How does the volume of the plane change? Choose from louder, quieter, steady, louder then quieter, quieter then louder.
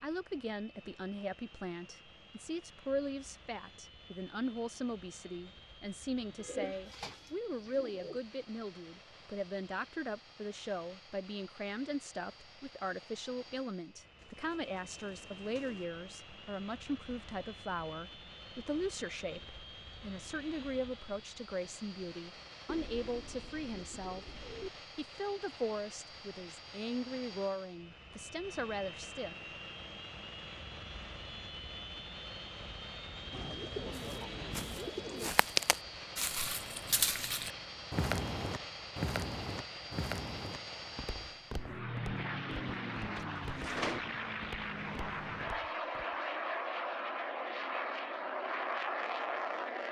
louder.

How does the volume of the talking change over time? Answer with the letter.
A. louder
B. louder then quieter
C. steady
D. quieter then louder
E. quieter
C.